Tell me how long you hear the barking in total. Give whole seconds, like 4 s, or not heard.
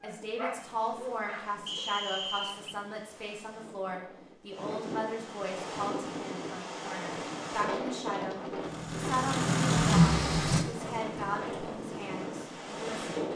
2 s.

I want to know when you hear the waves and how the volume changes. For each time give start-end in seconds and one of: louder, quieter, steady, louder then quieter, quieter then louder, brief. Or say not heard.
0.0-13.3 louder.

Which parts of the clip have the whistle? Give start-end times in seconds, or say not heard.
1.6-2.8.